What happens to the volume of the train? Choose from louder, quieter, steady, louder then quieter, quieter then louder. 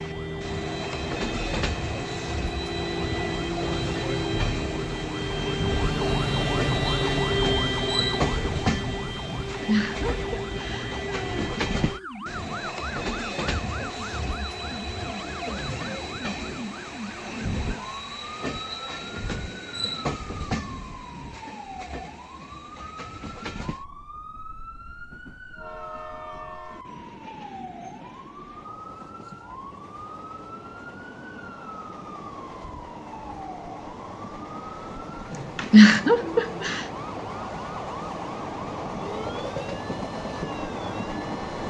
quieter then louder.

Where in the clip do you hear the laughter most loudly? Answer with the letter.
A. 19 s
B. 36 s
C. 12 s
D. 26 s
B.